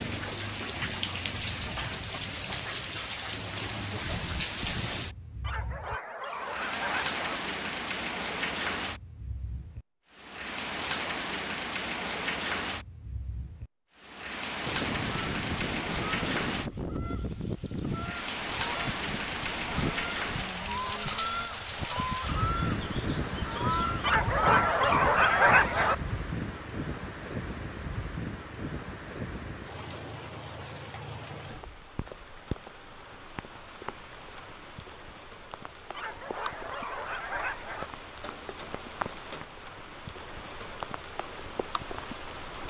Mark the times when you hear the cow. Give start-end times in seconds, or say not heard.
not heard.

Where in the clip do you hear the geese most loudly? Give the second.
25 s.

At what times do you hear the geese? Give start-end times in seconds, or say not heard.
14.7-25.9.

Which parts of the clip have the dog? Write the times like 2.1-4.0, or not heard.
5.4-7.4, 24.0-25.9, 35.9-37.9.